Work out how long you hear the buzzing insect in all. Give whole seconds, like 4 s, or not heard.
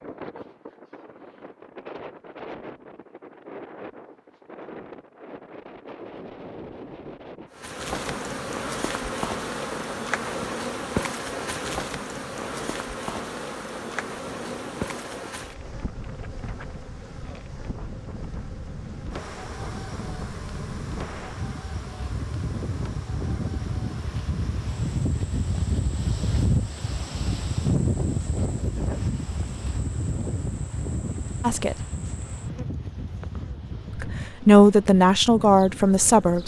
29 s.